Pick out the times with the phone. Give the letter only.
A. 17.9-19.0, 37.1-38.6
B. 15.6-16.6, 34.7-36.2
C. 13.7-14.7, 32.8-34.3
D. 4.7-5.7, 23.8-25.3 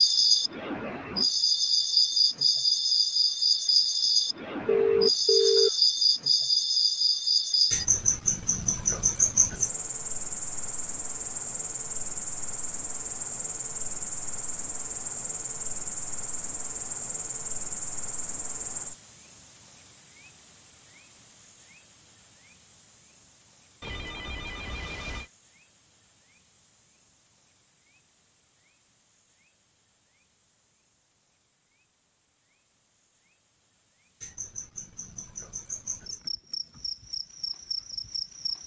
D.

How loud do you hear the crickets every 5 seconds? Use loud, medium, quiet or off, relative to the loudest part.
loud, loud, medium, medium, quiet, quiet, quiet, quiet.